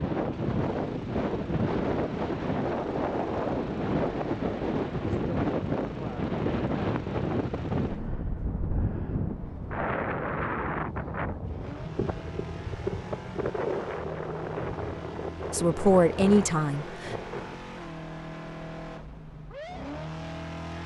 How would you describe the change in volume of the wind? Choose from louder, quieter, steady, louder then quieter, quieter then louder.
quieter.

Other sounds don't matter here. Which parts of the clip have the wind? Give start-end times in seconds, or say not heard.
0.0-17.6.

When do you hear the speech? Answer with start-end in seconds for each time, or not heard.
15.5-17.1.